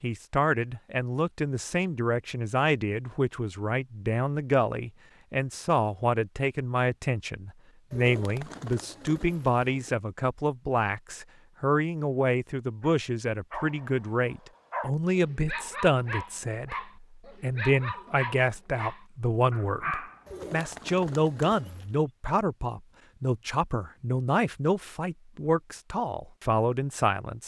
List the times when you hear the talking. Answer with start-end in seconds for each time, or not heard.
0.0-27.4.